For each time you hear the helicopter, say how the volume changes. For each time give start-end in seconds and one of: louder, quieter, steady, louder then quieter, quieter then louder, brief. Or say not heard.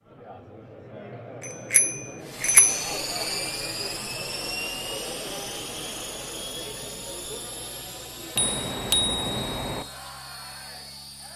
2.2-11.3 quieter.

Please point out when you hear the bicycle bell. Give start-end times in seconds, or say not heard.
1.4-3.0, 8.3-9.8.